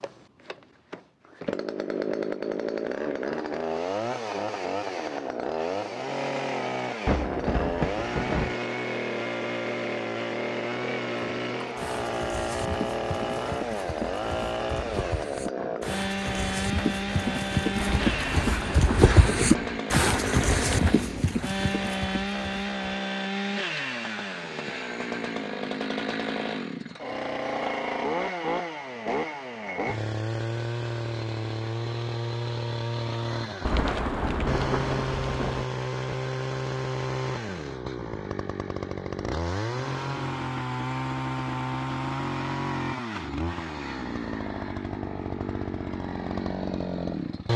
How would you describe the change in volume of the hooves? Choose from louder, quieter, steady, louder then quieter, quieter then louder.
louder then quieter.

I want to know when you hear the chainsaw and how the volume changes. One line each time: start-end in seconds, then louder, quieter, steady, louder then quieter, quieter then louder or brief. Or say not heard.
0.0-47.5 steady.